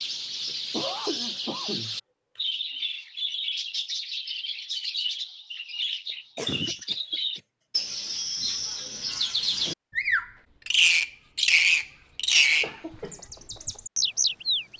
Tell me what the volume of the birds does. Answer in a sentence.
The loudness of the birds goes up.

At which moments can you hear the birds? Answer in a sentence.
The birds can be heard from 0.0 to 14.7 s.